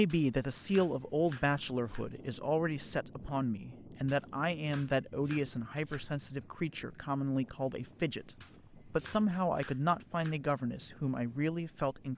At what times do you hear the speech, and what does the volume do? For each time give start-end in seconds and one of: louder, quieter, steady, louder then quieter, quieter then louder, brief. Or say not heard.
0.0-12.1 steady.